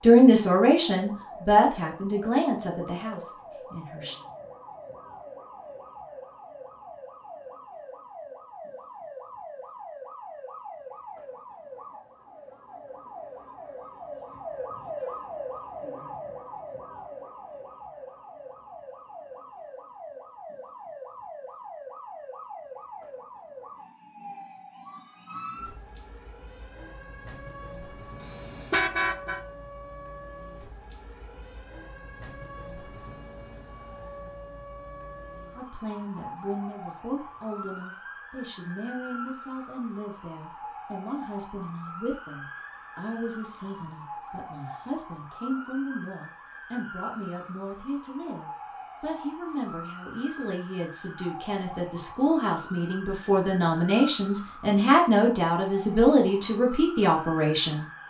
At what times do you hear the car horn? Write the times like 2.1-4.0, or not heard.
28.2-29.4.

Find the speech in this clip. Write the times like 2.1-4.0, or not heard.
0.0-4.2, 35.5-57.9.